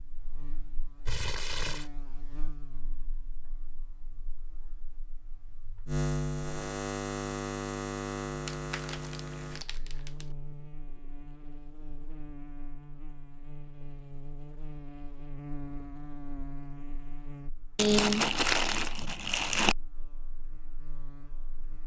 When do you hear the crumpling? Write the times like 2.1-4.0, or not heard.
1.1-1.9, 8.4-10.2, 17.8-19.8.